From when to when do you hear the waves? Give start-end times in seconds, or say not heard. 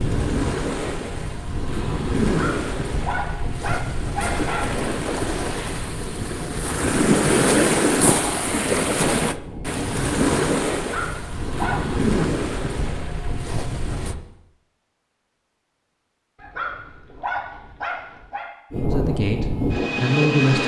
0.0-14.2.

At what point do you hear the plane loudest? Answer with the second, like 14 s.
20 s.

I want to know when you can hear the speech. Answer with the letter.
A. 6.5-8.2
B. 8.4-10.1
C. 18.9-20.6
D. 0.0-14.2
C.